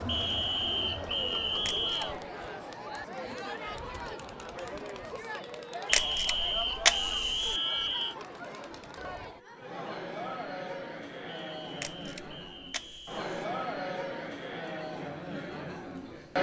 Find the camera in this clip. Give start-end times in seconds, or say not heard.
1.6-2.1, 5.9-7.6, 11.8-13.4.